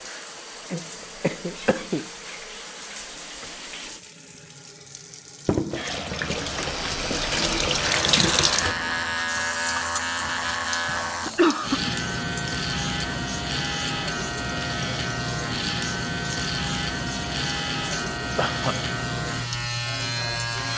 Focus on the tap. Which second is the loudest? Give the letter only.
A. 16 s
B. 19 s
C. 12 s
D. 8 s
D.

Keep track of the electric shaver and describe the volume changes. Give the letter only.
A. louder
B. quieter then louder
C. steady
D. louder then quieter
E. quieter
C.